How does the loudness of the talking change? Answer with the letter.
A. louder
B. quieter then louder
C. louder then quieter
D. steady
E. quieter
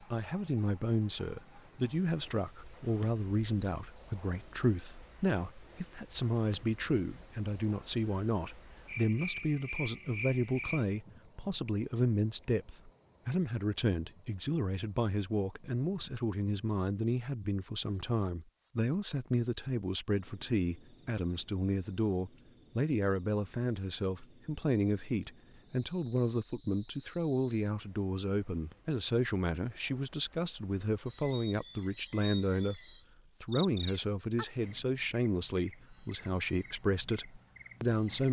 D.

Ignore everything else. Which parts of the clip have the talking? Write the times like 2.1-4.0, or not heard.
0.0-32.8, 33.4-38.2.